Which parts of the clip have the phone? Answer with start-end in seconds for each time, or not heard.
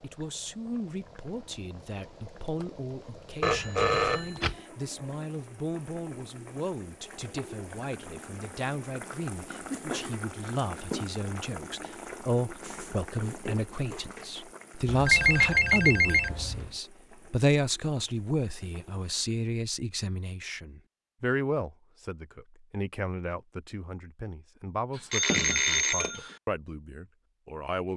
3.4-4.5, 14.8-16.7, 24.9-26.4.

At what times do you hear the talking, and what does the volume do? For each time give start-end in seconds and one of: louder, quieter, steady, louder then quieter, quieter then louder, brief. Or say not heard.
0.0-27.9 louder then quieter.